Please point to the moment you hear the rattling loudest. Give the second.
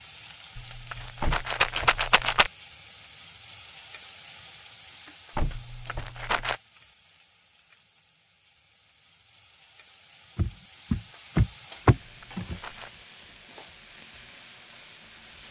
2 s.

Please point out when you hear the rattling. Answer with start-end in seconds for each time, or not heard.
0.6-2.5, 5.5-6.5, 12.0-12.9.